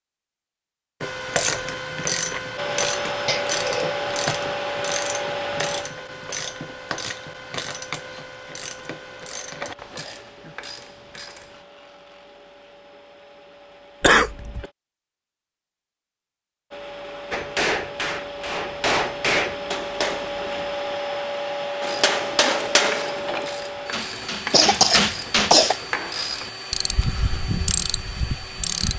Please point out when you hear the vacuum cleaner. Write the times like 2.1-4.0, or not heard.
2.5-14.8, 16.7-28.9.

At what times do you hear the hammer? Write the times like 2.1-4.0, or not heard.
17.3-20.3, 21.8-25.6.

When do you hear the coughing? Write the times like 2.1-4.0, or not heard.
3.2-4.0, 14.0-14.7, 24.5-25.8.